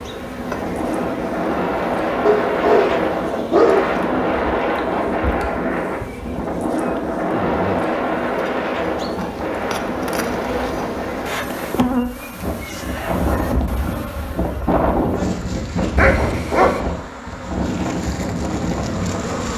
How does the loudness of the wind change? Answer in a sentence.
The volume of the wind stays about the same.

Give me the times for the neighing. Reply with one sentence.
The neighing can't be heard in this clip.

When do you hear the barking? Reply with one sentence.
You can hear the barking from 2.2 to 3.9 s and from 15.9 to 16.8 s.